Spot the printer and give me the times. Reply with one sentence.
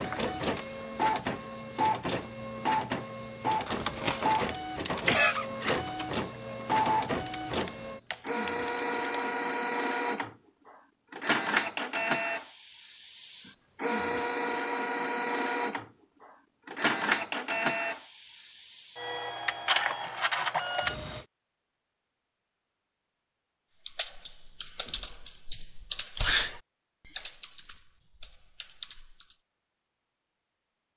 The printer can be heard from 0.0 to 21.2 s.